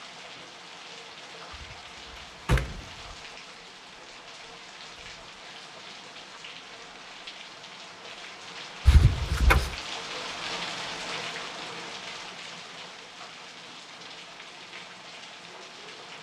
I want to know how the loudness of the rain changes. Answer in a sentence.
The loudness of the rain goes up, then down.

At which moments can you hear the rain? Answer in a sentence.
The rain can be heard from 0.0 to 16.1 s.